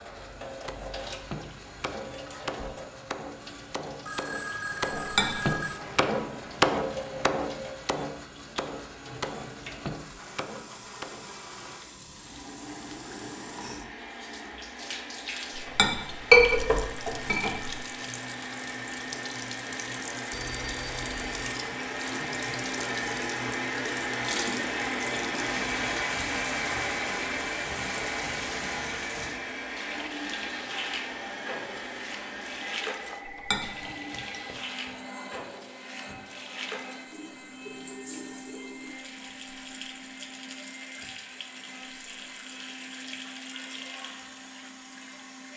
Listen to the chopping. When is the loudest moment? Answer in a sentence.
The volume of the chopping peaks at 7 seconds.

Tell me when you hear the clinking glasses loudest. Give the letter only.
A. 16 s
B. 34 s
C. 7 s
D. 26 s
A.